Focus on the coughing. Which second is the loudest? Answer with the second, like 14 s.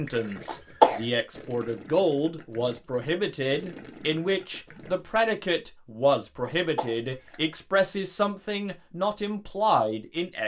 1 s.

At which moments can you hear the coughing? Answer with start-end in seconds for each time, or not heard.
0.5-1.0, 6.4-7.3.